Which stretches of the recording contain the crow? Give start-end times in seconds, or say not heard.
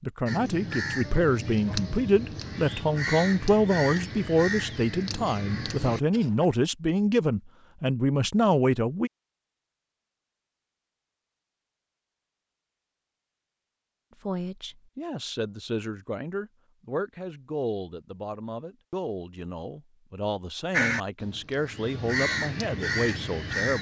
0.2-6.5, 20.7-23.7.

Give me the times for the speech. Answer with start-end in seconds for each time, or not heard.
0.0-9.1, 14.2-23.7.